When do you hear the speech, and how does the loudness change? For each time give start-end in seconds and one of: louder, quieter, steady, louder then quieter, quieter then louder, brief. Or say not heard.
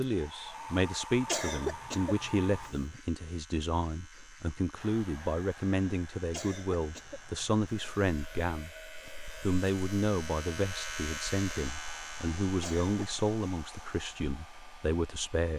0.0-15.5 steady.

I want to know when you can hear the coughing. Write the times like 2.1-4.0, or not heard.
1.2-3.0, 6.3-7.9, 12.6-13.1.